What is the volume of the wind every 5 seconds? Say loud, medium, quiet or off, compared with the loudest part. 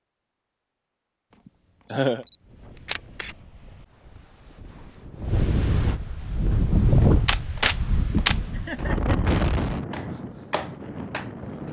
quiet, loud, medium.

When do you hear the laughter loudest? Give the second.
2 s.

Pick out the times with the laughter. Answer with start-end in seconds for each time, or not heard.
1.4-2.2, 8.5-9.3.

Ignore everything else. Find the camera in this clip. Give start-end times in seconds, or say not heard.
2.2-3.4, 6.2-8.5.